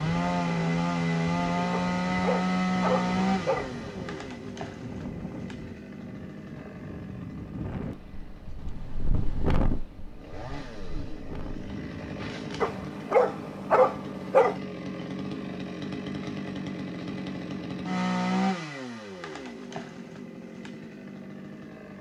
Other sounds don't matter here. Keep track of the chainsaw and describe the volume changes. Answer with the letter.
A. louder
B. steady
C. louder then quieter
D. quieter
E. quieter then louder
E.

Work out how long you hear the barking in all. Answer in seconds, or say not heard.
4 s.